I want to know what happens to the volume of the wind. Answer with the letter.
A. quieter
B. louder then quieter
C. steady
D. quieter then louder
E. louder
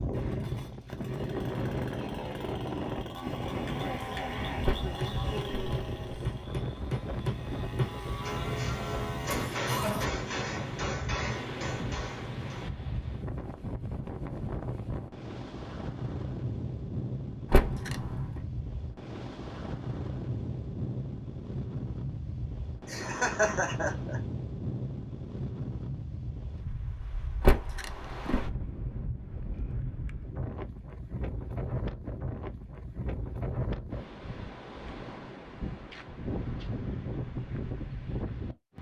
C.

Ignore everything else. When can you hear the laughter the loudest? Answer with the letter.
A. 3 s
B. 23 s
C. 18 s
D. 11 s
B.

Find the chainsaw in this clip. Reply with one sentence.
You can hear the chainsaw from 0.0 to 9.5 s.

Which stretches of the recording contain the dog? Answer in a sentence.
You can't hear the dog here.